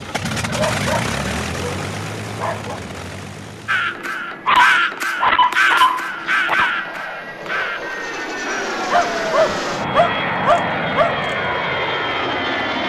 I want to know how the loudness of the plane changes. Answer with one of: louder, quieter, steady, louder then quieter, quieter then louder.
quieter then louder.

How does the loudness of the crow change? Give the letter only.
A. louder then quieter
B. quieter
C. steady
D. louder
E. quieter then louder
B.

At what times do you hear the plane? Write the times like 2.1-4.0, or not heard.
0.0-12.8.